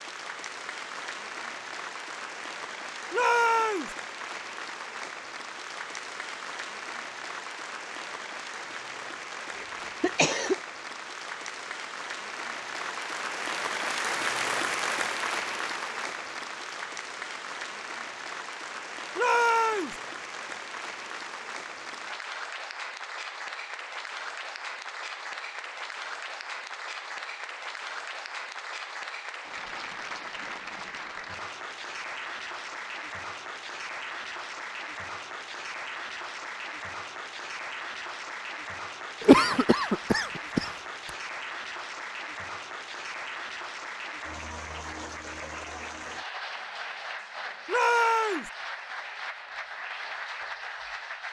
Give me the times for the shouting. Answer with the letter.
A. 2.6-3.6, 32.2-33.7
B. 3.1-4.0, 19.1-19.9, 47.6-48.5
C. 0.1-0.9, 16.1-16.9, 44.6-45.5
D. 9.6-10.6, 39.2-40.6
B.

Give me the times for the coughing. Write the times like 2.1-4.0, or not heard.
9.6-10.6, 39.2-40.6.